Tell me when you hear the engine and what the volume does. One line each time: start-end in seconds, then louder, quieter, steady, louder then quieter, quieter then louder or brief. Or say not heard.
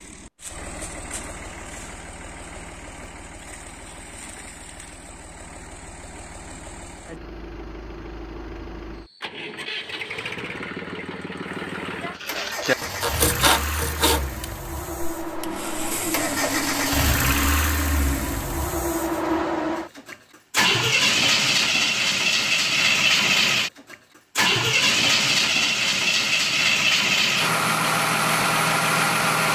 0.0-29.5 louder.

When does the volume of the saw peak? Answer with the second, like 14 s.
13 s.